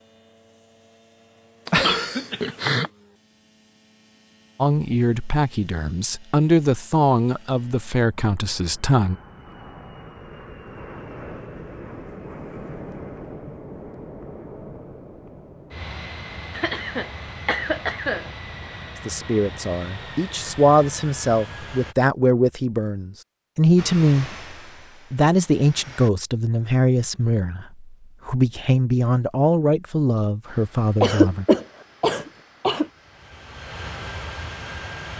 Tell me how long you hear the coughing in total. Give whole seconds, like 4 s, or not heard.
5 s.